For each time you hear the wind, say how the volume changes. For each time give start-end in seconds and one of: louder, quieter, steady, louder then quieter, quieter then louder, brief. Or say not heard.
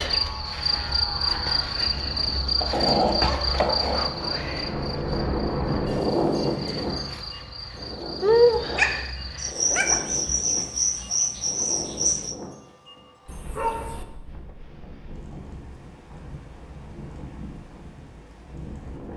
0.2-19.1 louder then quieter.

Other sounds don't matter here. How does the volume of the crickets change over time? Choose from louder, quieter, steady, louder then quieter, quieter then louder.
quieter then louder.